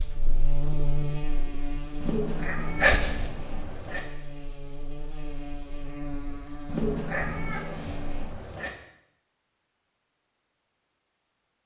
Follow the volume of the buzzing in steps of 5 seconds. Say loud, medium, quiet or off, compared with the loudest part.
loud, loud, off.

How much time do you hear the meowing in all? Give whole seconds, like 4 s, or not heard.
4 s.